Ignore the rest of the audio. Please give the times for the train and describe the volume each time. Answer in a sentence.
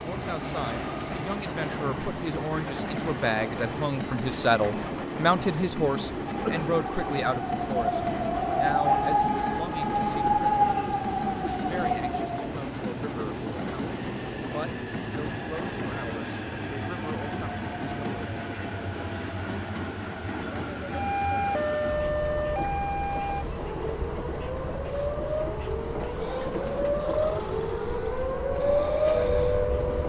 You can hear the train from 0.0 to 30.0 s, at a steady volume.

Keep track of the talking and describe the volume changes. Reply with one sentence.
The loudness of the talking goes up, then down.